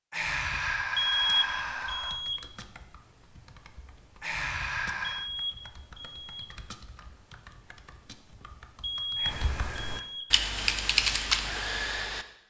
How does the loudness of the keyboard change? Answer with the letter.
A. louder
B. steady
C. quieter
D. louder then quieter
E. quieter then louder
A.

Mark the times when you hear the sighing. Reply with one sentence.
You can hear the sighing from 0.1 to 2.2 s, from 4.2 to 5.3 s and from 9.2 to 10.1 s.